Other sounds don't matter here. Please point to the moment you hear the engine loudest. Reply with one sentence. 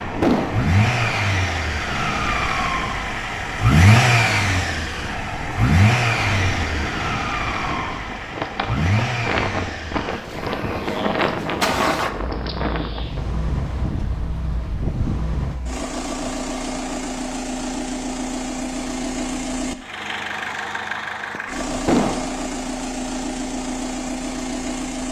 The volume of the engine peaks at 4 seconds.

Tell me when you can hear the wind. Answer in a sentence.
The wind can be heard from 0.0 to 15.6 s.